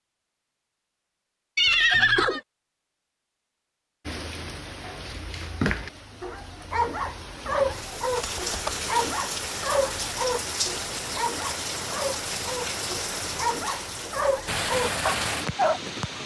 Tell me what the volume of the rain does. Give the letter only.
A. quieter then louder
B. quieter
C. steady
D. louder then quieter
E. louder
E.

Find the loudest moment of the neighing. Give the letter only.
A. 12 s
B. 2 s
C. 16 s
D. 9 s
B.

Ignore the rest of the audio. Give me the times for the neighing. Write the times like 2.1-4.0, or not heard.
1.6-2.4, 8.2-8.8.